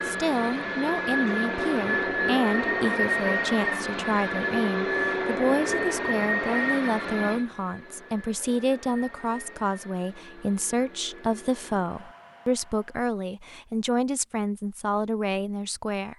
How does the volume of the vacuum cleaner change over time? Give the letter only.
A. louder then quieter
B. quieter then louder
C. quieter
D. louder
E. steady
C.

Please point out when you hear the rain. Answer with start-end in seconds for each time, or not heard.
not heard.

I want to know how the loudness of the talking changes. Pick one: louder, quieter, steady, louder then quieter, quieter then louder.
steady.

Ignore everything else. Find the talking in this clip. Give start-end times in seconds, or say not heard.
0.1-16.1.